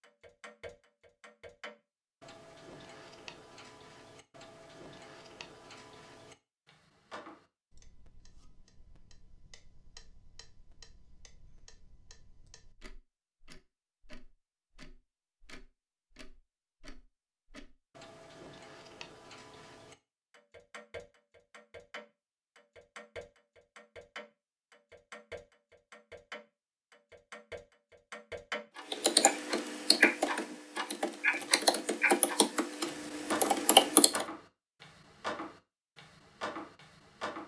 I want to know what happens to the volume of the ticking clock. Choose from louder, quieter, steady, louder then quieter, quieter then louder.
quieter then louder.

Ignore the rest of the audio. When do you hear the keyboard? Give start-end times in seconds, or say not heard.
28.9-34.2.